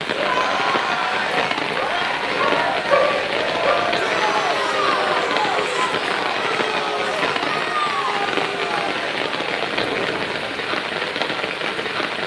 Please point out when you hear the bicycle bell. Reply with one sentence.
You can't hear the bicycle bell here.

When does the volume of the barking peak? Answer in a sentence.
The volume of the barking peaks at 3 seconds.